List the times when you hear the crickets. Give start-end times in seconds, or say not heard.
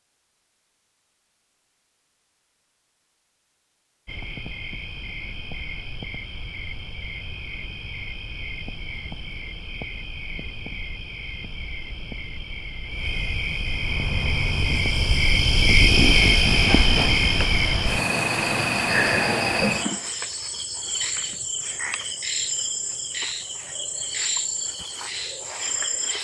4.0-26.1.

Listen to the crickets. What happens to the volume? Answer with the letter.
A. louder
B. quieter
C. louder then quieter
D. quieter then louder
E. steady
C.